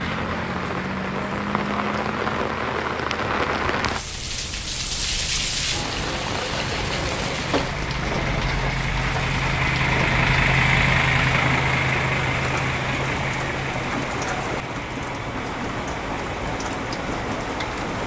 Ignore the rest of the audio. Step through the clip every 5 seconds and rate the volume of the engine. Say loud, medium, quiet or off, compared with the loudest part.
quiet, medium, loud, quiet.